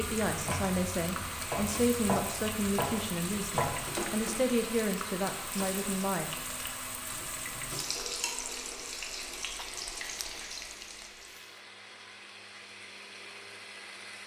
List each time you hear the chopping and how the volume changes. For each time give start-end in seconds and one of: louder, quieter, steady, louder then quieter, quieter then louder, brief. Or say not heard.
0.0-4.3 louder.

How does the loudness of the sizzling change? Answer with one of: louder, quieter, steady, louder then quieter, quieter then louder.
steady.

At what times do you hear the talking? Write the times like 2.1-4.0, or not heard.
0.0-6.3.